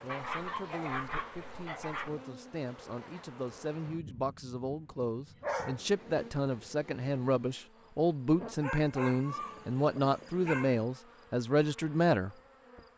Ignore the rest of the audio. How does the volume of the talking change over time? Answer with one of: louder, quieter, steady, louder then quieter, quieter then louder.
louder.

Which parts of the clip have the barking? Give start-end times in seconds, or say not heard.
0.1-2.1, 5.0-5.8, 8.6-10.8.